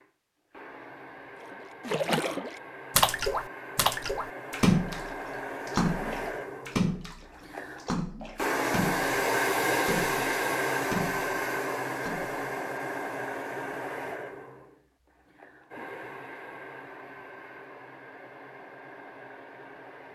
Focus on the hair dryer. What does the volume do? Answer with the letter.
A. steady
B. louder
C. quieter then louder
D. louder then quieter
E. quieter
D.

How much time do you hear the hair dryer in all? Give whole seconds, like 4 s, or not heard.
20 s.